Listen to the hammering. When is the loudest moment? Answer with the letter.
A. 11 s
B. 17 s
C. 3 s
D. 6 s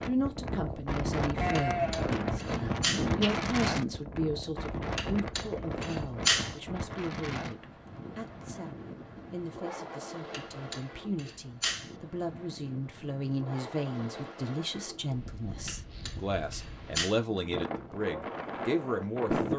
D.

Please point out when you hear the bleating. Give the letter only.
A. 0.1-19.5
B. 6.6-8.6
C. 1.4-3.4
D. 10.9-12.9
C.